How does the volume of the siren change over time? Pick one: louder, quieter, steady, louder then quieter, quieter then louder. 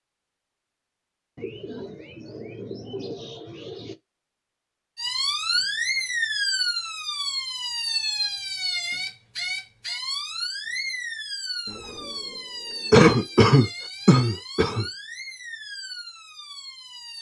quieter.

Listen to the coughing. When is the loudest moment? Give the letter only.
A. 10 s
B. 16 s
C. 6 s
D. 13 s
D.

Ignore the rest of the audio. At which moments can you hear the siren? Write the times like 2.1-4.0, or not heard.
5.0-17.1.